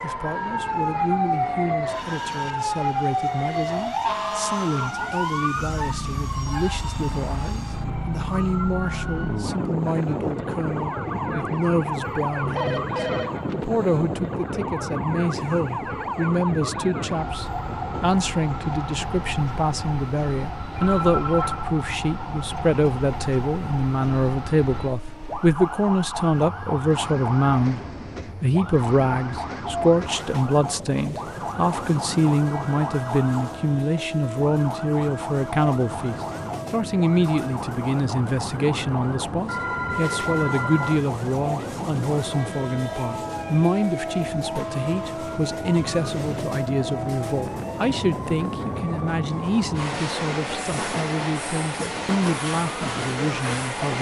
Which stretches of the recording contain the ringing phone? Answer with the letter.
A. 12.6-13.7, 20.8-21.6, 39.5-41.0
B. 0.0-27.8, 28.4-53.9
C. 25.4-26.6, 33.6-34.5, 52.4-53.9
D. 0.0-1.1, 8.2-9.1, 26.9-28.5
A.